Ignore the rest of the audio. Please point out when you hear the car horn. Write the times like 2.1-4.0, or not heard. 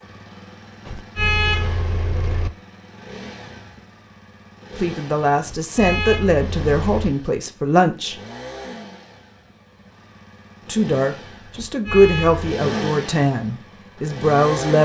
0.8-2.5, 5.5-7.1, 11.6-12.5.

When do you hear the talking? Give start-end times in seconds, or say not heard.
4.8-8.2, 10.7-14.7.